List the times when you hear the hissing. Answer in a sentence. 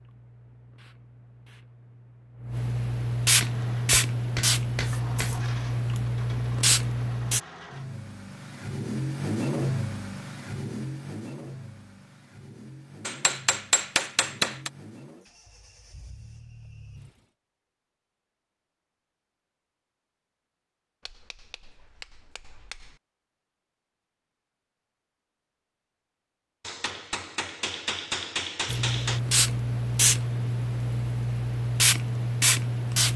The hissing can be heard from 0.0 to 7.4 s and from 28.6 to 33.1 s.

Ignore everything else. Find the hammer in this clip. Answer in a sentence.
The hammer can be heard from 3.4 to 5.3 s, from 13.1 to 14.7 s, from 21.1 to 22.9 s and from 26.6 to 29.2 s.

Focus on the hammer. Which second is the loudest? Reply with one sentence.
The loudest moment of the hammer is at 14 seconds.